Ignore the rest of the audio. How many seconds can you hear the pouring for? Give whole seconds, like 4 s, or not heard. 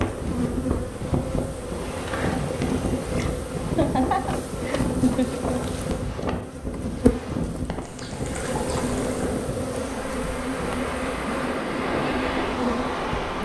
3 s.